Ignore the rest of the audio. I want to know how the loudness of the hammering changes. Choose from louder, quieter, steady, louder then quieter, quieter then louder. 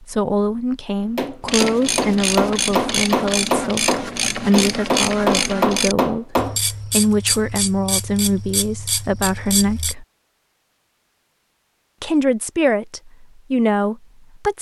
steady.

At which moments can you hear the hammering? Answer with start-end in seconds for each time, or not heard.
1.1-6.5.